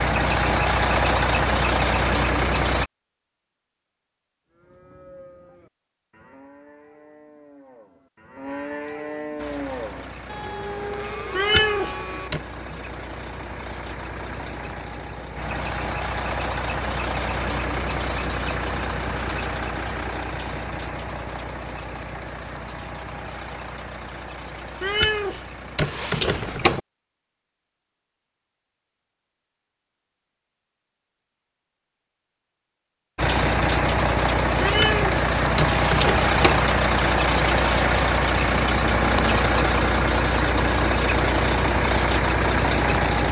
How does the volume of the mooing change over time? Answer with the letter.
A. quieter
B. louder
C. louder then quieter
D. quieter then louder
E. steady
B.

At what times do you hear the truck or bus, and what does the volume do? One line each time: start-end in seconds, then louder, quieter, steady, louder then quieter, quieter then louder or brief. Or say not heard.
0.0-2.9 brief
9.3-26.8 louder then quieter
33.1-43.2 steady.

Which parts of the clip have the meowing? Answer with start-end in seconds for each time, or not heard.
11.3-12.4, 24.8-26.8, 34.6-36.6.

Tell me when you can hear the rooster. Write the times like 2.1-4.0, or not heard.
not heard.